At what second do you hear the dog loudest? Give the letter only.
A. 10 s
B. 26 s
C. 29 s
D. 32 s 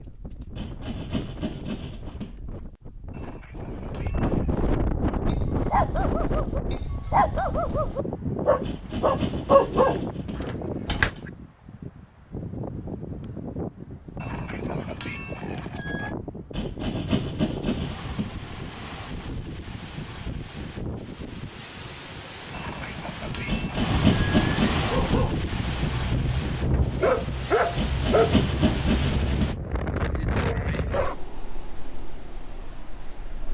A.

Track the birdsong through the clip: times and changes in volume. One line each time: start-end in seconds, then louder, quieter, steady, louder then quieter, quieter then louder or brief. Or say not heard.
not heard.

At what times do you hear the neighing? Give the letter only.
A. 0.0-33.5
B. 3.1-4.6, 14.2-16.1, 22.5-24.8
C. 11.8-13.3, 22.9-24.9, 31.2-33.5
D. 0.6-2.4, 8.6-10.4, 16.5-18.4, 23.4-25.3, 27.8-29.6
B.